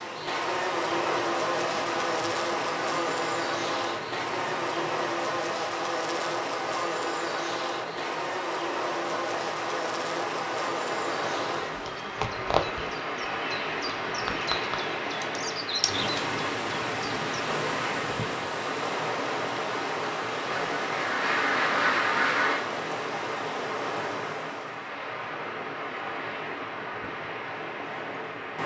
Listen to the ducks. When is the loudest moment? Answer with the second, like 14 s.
22 s.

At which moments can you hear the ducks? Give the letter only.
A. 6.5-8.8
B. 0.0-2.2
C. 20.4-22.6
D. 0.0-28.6
C.